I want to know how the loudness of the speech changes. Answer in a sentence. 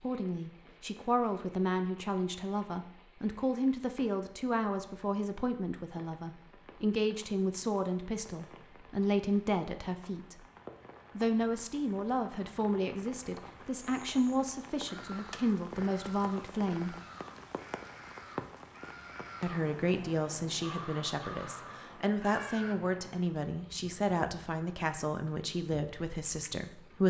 The loudness of the speech stays about the same.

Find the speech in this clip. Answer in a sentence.
The speech can be heard from 0.0 to 10.4 s, from 11.2 to 16.9 s and from 19.4 to 27.0 s.